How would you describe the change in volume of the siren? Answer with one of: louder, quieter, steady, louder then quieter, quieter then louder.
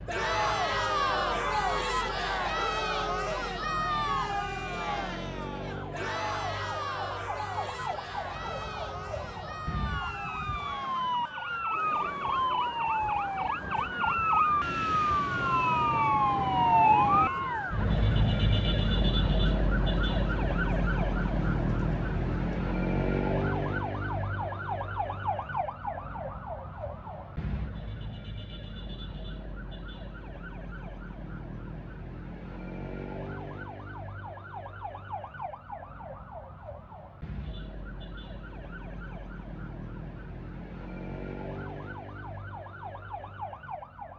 louder then quieter.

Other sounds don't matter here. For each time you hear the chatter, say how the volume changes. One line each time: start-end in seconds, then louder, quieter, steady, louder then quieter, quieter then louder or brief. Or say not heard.
0.1-22.6 quieter.